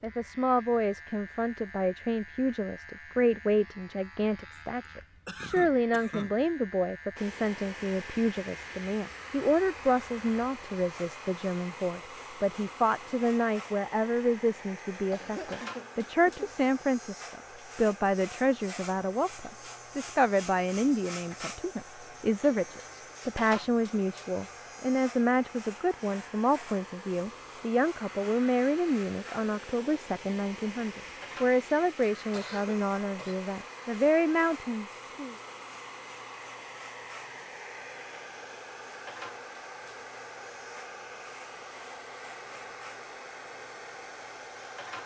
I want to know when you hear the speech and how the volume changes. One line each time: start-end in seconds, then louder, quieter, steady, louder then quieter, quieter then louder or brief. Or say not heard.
0.0-35.4 steady.